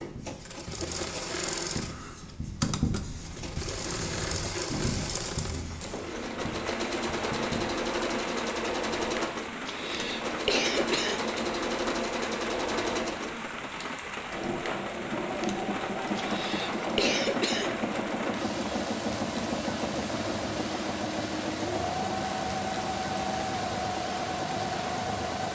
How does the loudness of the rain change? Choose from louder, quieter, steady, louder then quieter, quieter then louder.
steady.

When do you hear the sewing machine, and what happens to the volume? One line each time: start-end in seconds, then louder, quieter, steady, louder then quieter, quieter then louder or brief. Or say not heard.
0.0-25.5 steady.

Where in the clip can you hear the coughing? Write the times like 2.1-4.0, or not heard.
9.7-11.2, 16.1-17.8.